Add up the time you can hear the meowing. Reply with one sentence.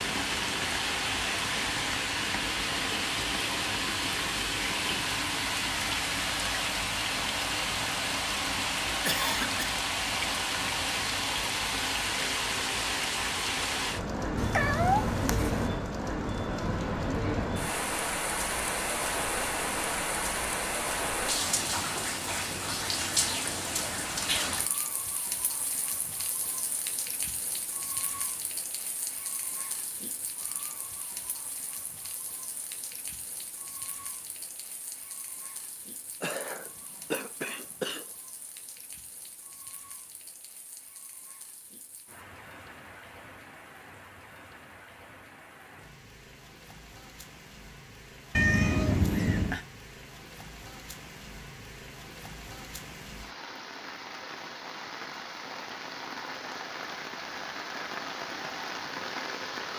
The meowing can be heard for 3 seconds in total.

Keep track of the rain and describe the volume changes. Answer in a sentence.
The loudness of the rain goes down, then up.